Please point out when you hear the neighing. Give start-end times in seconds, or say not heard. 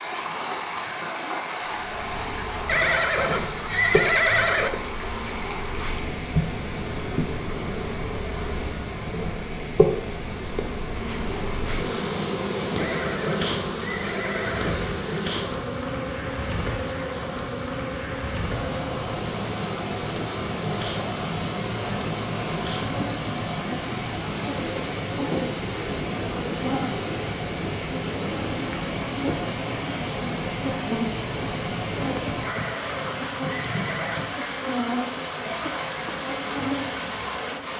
2.6-4.7, 12.8-14.8, 32.4-34.2.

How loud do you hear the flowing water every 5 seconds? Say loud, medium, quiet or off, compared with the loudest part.
loud, medium, medium, medium, loud, loud, loud, loud.